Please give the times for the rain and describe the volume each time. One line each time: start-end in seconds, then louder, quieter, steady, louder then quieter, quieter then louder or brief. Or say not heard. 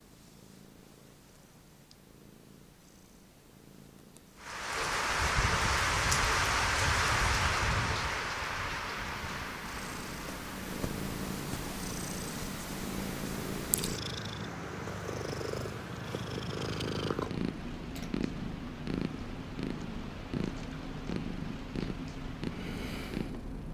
4.4-23.6 quieter.